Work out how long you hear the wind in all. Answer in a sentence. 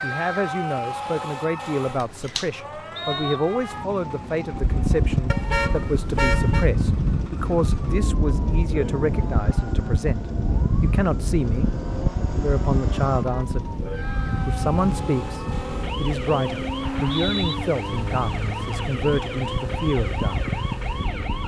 You can hear the wind for 17 seconds altogether.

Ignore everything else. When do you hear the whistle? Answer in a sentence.
You can hear the whistle from 3.0 to 3.5 s and from 16.8 to 17.6 s.